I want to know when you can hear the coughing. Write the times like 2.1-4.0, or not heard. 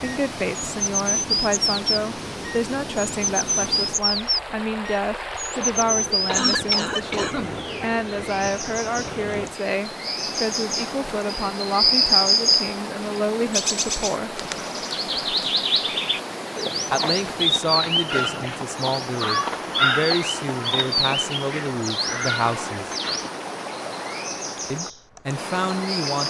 6.2-7.6.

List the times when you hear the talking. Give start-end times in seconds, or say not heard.
0.0-14.3, 16.9-22.9, 24.7-26.2.